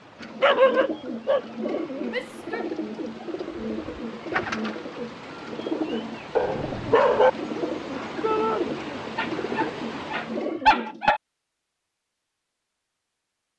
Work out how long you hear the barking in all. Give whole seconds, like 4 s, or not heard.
4 s.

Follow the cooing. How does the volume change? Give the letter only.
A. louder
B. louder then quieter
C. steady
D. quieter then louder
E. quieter
C.